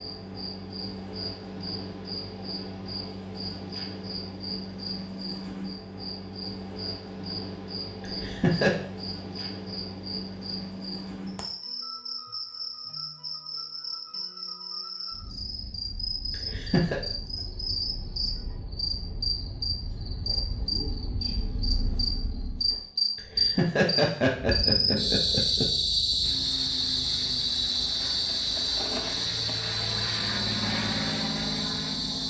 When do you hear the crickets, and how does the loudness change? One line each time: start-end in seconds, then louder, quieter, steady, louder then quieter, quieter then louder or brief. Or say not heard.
0.0-32.2 louder.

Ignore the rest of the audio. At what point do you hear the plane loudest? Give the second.
31 s.